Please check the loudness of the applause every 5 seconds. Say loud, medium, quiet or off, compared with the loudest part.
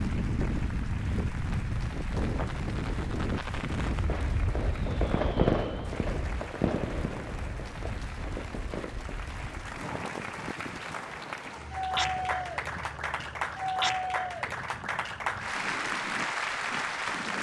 quiet, quiet, loud, loud.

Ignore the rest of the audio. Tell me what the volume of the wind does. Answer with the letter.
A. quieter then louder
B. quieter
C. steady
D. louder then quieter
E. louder
B.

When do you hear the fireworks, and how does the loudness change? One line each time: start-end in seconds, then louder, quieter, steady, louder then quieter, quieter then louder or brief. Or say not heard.
1.3-10.5 louder then quieter.